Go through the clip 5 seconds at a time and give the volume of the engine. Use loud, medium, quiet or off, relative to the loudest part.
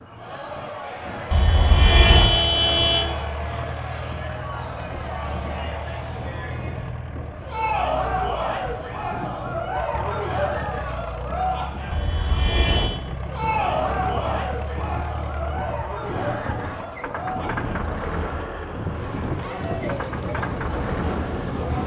loud, medium, loud, loud, loud.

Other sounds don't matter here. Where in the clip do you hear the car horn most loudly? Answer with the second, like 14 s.
2 s.